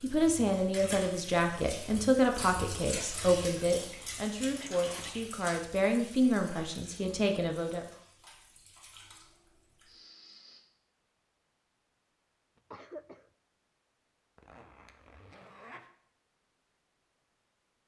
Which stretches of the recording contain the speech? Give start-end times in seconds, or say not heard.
0.0-7.8.